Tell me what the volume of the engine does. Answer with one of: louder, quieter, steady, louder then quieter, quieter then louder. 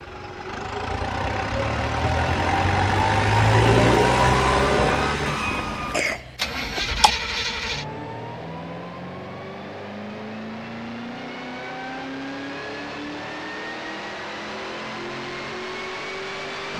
quieter.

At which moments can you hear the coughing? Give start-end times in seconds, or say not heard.
5.2-7.1.